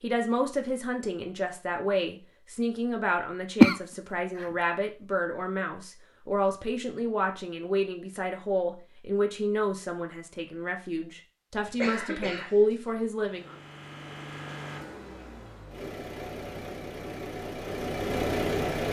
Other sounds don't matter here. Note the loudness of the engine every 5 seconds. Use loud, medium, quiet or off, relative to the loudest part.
off, off, medium, loud.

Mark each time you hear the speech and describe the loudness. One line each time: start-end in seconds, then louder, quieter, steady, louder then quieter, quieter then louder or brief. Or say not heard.
0.0-13.6 steady.